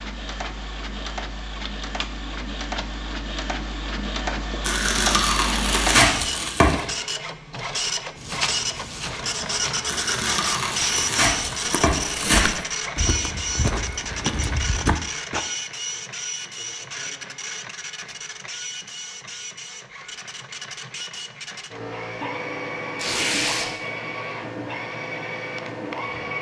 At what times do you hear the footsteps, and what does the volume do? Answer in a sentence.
You can hear the footsteps from 8.2 to 15.4 s, getting louder.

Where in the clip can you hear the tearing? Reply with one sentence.
You can hear the tearing from 4.6 to 6.8 s, from 9.8 to 12.4 s and from 22.9 to 23.7 s.